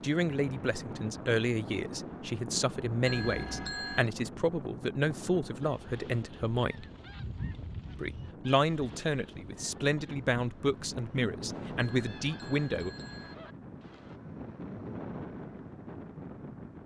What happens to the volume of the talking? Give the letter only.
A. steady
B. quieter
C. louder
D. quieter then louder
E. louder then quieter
A.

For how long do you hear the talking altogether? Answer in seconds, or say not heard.
12 s.